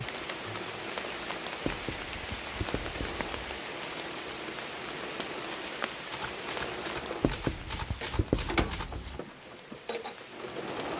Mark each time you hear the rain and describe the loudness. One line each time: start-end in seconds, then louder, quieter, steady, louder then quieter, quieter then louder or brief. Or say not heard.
0.0-10.9 quieter.